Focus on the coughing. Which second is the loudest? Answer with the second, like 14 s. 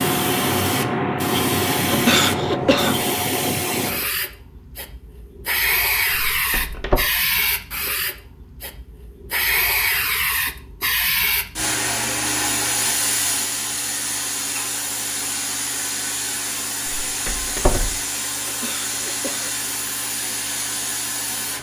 2 s.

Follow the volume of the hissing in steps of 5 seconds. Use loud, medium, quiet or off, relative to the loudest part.
loud, loud, loud, medium, medium.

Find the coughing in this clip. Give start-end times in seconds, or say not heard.
1.9-3.0, 18.4-19.6.